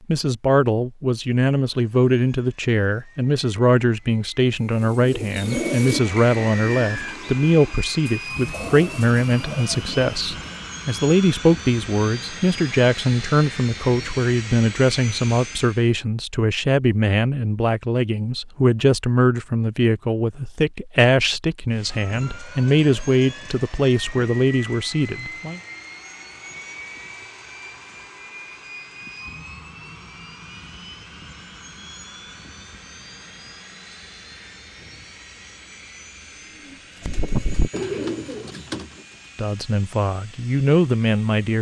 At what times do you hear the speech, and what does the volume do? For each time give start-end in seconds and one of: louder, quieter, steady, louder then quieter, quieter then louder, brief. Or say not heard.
0.1-25.6 steady
39.4-41.5 brief.